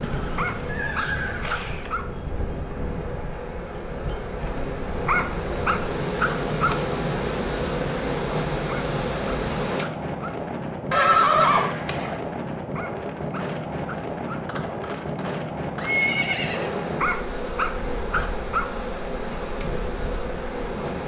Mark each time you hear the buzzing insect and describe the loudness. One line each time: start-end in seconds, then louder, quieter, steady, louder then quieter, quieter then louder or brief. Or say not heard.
0.0-9.8 louder
16.5-21.0 steady.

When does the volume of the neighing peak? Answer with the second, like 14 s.
11 s.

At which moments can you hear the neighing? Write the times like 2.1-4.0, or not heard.
0.0-1.9, 10.9-12.2, 14.4-16.7.